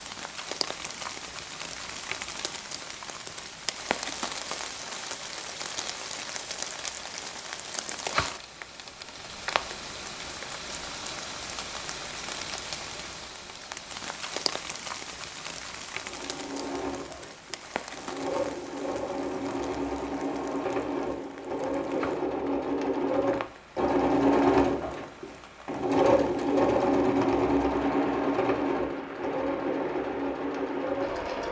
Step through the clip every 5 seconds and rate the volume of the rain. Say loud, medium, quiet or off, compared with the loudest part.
loud, loud, loud, medium, medium, medium, medium.